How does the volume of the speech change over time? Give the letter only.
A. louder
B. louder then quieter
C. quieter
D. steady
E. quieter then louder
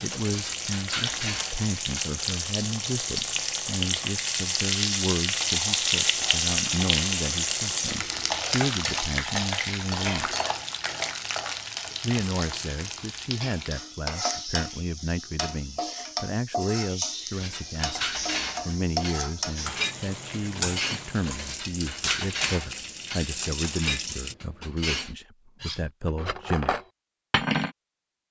D.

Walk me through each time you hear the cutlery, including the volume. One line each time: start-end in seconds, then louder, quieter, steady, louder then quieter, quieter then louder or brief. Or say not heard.
0.0-2.1 brief
17.3-27.7 steady.